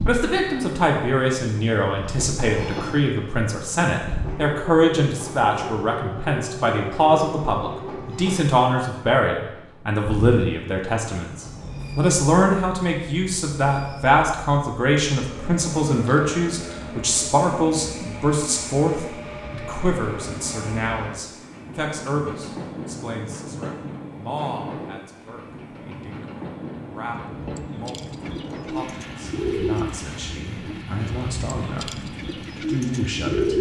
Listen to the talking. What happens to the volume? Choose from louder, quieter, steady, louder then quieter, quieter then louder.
quieter.